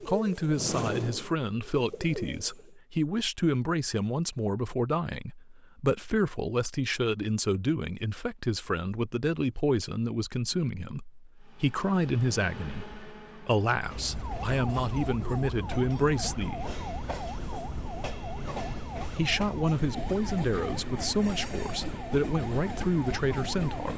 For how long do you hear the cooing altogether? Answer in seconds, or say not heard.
3 s.